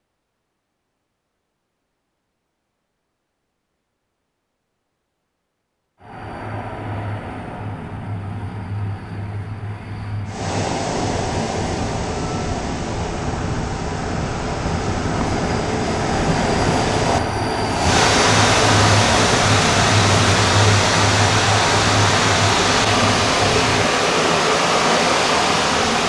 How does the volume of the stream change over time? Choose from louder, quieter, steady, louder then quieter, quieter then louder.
louder.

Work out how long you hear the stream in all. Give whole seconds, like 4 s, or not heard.
16 s.